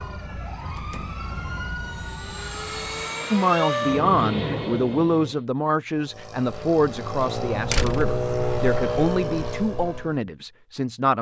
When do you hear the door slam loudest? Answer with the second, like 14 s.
8 s.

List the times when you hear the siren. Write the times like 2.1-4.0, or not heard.
0.0-3.2.